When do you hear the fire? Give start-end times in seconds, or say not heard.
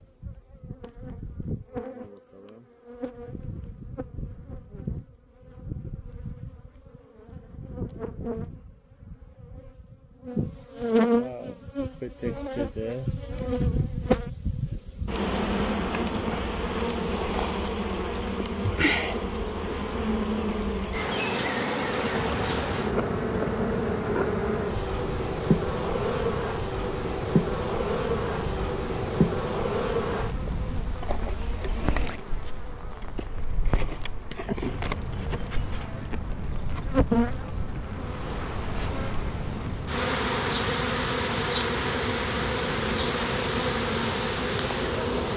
22.1-45.3.